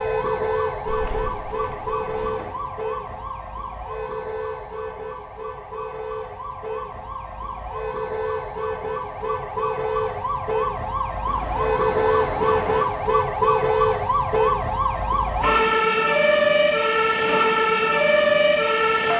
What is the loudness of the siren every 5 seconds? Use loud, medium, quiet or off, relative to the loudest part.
medium, medium, loud, loud.